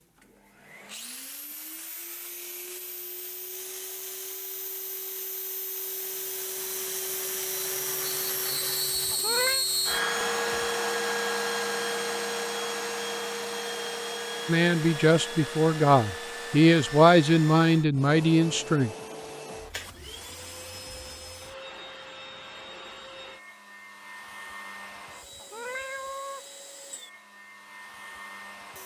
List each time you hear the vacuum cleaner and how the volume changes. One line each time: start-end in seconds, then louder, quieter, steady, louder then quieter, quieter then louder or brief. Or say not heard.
0.0-28.8 louder then quieter.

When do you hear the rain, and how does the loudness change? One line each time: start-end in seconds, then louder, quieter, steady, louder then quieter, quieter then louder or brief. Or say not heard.
not heard.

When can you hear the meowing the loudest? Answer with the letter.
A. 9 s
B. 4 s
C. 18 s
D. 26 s
A.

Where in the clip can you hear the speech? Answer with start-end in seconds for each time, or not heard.
14.4-18.9.